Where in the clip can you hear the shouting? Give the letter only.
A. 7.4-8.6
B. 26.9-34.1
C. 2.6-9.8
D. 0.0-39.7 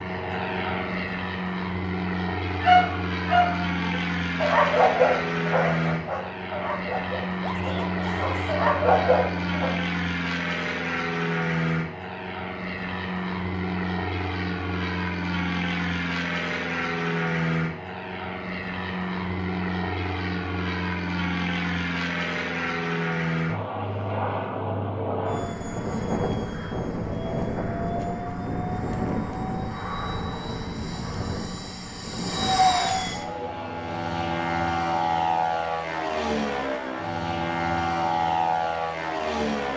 A.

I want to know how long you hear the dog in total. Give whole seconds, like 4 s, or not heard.
7 s.